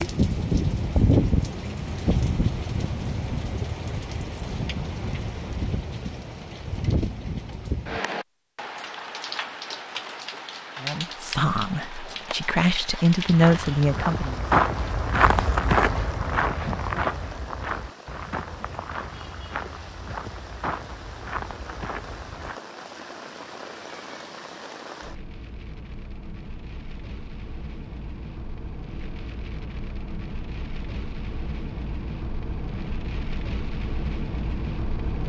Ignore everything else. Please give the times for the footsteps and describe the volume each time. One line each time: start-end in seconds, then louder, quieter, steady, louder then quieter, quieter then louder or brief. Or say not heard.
13.2-22.6 quieter.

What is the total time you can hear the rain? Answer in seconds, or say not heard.
35 s.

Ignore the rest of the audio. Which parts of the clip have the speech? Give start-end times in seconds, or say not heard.
10.8-14.4.